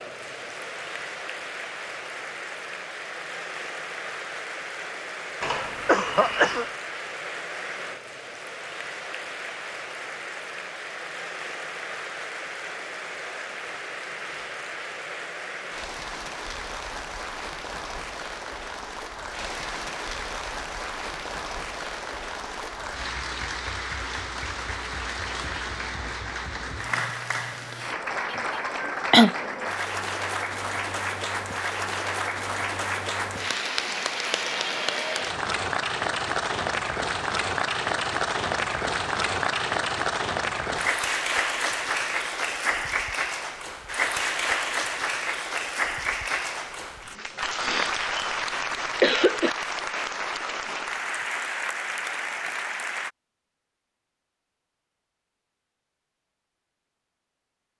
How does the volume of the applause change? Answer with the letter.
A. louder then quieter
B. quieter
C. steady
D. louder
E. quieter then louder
D.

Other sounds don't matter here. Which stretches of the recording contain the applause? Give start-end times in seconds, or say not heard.
0.0-53.1.